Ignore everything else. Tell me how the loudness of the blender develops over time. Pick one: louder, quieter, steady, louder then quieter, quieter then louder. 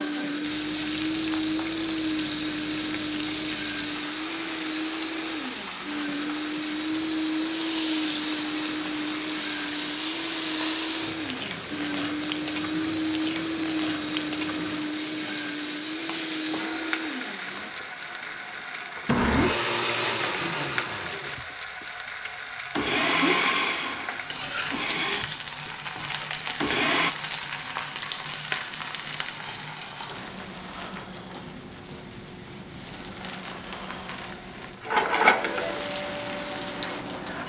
steady.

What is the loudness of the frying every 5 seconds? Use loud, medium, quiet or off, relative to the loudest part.
medium, medium, medium, medium, medium, medium, medium, loud.